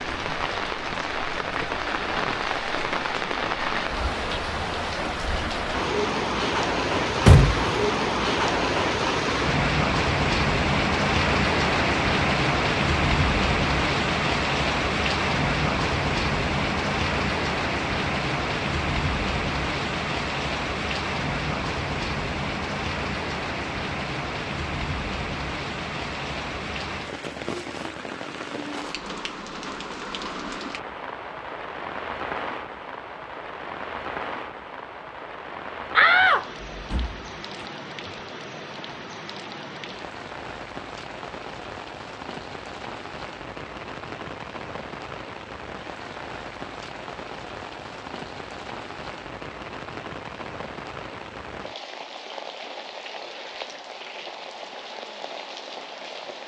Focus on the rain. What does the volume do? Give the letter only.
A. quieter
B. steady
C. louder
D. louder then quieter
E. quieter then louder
A.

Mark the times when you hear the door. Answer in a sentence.
You can hear the door from 7.0 to 7.7 s and from 35.9 to 37.6 s.